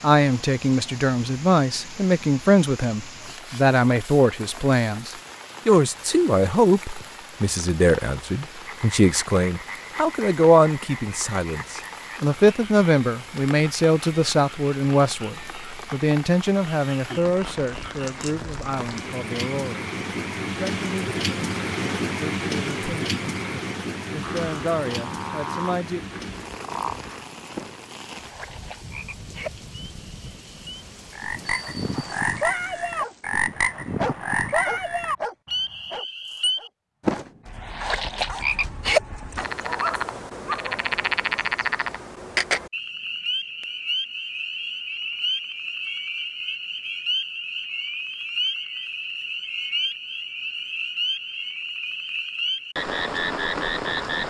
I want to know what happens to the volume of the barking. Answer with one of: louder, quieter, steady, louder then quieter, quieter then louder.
quieter then louder.